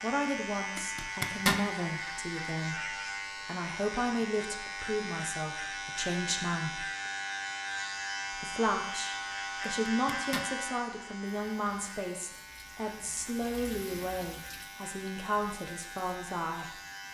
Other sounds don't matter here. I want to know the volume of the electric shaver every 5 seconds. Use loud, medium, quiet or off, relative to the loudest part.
loud, loud, medium, medium.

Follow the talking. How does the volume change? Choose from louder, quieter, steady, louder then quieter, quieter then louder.
steady.